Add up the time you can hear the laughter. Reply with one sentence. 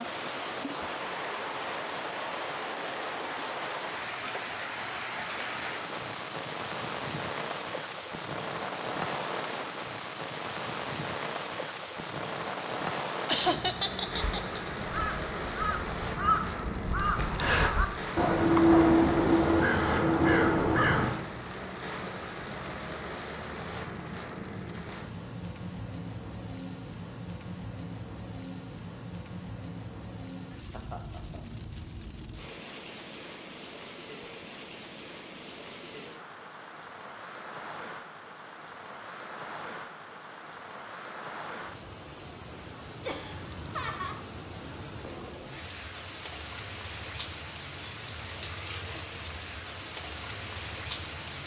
The laughter can be heard for 3 seconds in total.